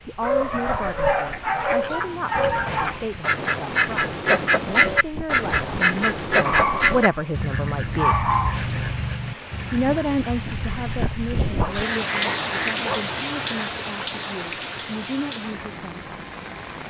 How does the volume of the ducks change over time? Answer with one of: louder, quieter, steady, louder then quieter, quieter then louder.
louder then quieter.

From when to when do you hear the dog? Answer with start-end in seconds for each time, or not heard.
0.2-3.0, 6.5-7.1, 8.0-8.6, 11.6-13.1.